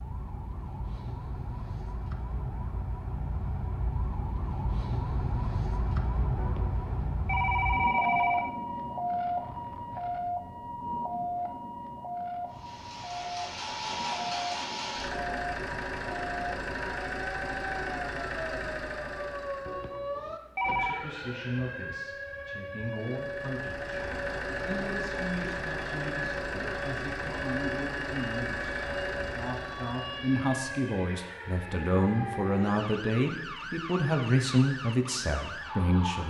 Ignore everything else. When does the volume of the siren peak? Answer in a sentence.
The loudest moment of the siren is at 8 seconds.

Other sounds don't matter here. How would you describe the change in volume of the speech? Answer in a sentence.
The loudness of the speech goes up.